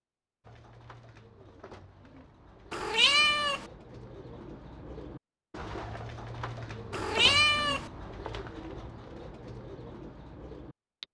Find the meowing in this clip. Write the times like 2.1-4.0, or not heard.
2.7-3.6, 6.9-7.9.